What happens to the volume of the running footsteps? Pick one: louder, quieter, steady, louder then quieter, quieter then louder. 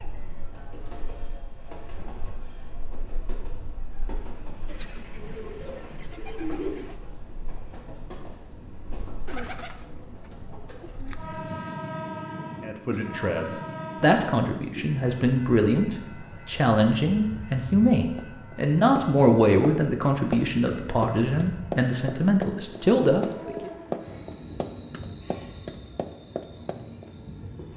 louder then quieter.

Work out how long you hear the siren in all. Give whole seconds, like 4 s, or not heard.
not heard.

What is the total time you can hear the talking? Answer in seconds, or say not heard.
11 s.